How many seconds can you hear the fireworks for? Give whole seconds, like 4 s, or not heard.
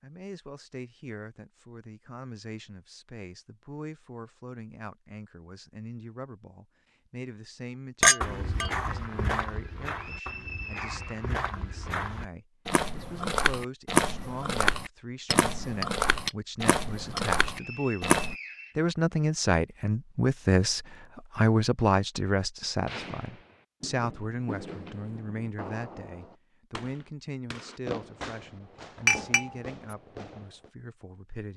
8 s.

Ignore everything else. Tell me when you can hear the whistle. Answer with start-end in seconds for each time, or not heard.
9.8-11.2, 17.4-18.8.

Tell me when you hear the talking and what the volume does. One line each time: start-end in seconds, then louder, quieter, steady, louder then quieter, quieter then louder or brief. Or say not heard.
0.0-31.5 louder then quieter.